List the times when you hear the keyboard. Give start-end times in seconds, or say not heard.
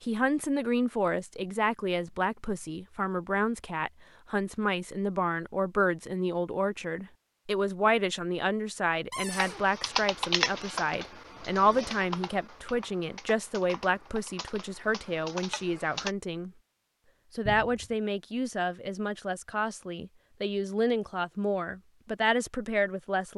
9.3-16.1.